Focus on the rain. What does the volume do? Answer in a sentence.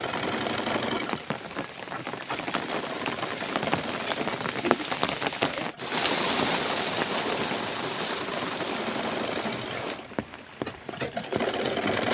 The loudness of the rain goes up, then down.